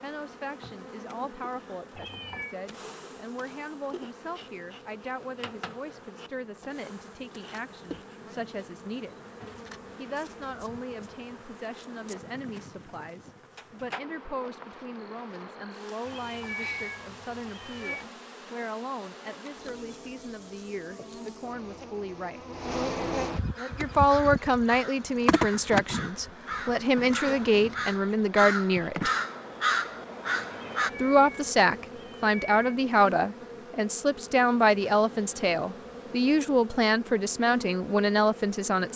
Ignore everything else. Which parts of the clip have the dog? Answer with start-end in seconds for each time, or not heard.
not heard.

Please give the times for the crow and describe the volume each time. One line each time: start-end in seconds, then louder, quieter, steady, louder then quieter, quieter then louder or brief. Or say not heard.
23.6-30.9 louder.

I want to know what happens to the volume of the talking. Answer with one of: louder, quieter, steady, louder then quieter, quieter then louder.
louder.